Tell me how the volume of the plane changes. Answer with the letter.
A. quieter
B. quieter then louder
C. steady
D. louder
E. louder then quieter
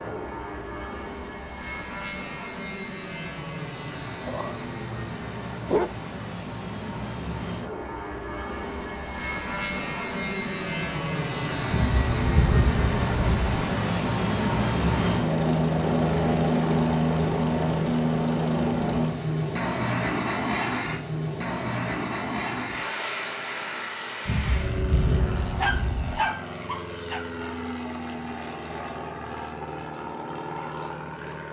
E.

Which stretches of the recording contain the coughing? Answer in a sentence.
You can't hear the coughing here.